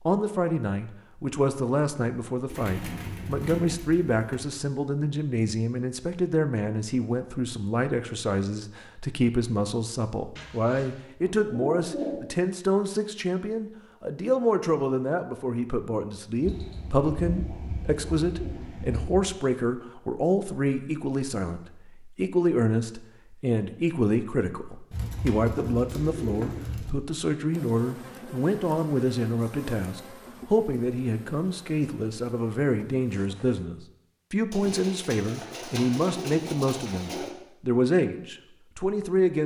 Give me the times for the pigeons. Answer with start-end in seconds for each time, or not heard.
2.5-4.5, 10.3-12.3, 16.4-19.2, 24.9-26.9, 34.5-37.3.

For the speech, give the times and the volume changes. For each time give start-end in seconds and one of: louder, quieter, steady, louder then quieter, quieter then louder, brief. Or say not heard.
0.1-39.4 steady.